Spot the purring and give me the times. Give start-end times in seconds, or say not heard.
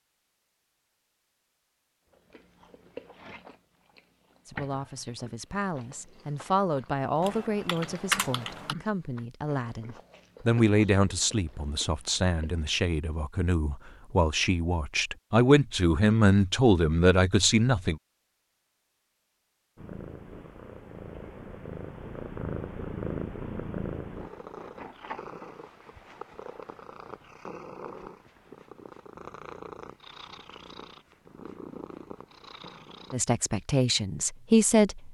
19.8-33.1.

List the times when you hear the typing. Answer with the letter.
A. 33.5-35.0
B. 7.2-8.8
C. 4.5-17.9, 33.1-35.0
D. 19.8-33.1
B.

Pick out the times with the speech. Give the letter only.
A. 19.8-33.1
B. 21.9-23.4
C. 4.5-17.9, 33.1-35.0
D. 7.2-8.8
C.